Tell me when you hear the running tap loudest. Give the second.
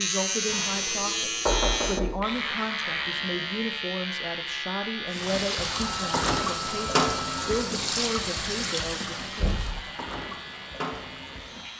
7 s.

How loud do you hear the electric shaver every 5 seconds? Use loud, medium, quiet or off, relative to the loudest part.
loud, medium, quiet.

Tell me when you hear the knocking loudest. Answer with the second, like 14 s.
2 s.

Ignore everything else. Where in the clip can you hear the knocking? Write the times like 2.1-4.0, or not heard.
0.5-2.2, 9.3-9.8.